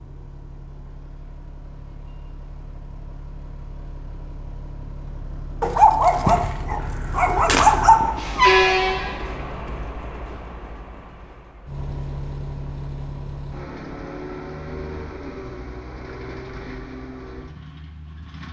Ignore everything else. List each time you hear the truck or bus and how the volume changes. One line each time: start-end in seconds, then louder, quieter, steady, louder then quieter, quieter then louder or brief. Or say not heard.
0.0-18.4 louder then quieter.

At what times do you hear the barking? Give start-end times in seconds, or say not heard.
5.6-8.2.